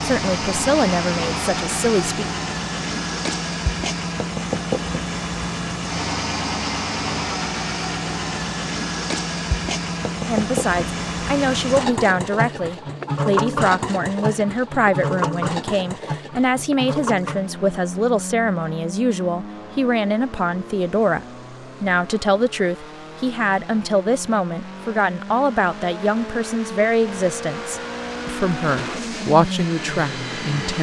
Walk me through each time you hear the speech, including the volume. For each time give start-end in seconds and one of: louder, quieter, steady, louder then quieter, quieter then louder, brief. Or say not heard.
0.0-2.2 brief
10.2-30.7 steady.